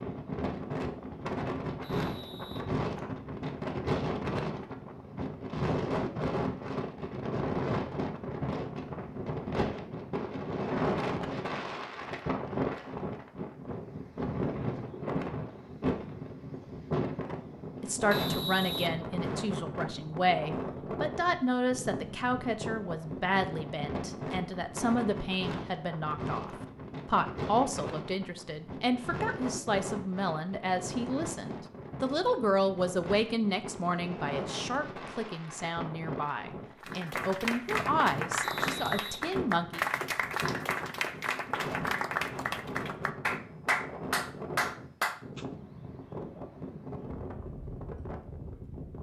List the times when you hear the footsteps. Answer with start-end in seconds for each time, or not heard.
not heard.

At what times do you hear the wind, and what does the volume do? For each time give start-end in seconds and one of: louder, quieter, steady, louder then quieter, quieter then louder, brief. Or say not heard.
0.0-48.9 quieter.